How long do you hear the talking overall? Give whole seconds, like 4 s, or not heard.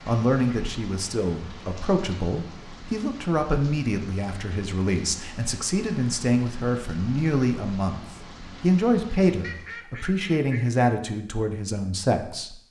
12 s.